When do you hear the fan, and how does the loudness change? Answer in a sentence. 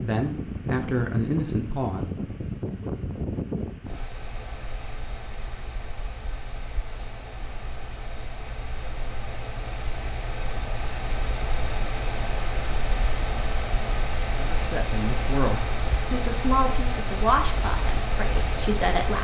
You can hear the fan from 0.0 to 19.1 s, getting quieter then louder.